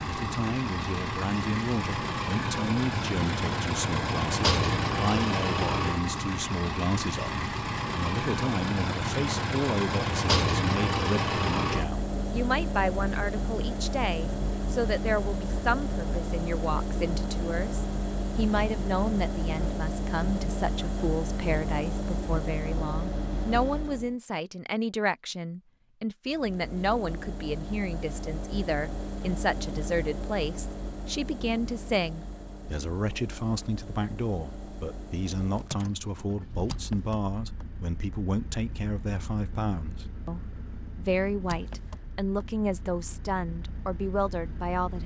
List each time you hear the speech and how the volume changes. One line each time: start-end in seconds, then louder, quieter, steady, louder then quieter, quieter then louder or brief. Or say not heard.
0.0-45.0 steady.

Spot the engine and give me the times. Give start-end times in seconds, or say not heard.
0.0-24.1, 26.2-45.0.